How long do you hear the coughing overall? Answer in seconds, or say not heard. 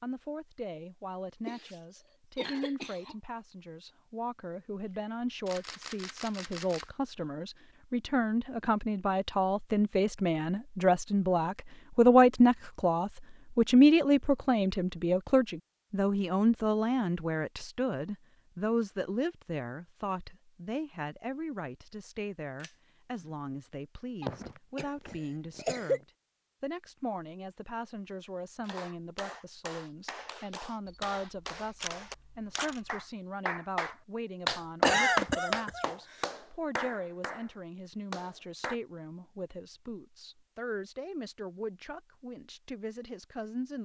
5 s.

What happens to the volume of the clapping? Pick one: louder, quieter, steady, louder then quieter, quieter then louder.
louder then quieter.